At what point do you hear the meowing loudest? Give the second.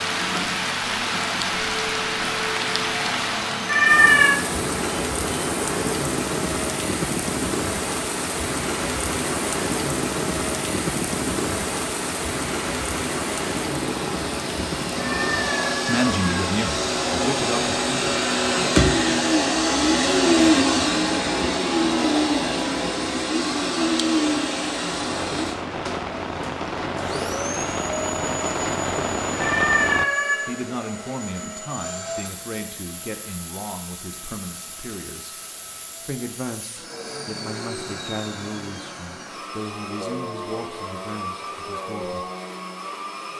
4 s.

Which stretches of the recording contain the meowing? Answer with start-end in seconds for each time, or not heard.
3.6-4.4, 14.9-16.4, 29.4-30.5.